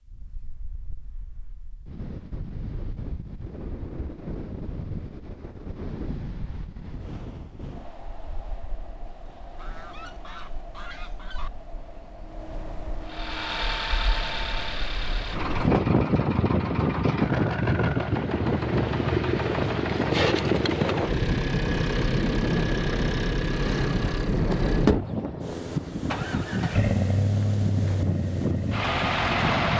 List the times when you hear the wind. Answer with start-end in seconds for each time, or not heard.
0.0-29.7.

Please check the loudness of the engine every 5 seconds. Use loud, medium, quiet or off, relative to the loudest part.
off, off, medium, loud, loud, loud.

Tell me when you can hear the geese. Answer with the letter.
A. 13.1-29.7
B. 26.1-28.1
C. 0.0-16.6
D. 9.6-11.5
D.